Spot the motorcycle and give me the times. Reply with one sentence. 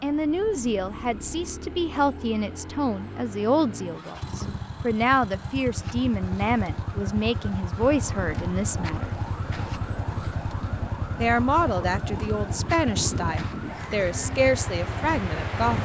The motorcycle can be heard from 0.0 to 15.8 s.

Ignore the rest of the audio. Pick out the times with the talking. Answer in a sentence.
The talking can be heard from 0.0 to 9.1 s and from 11.2 to 15.8 s.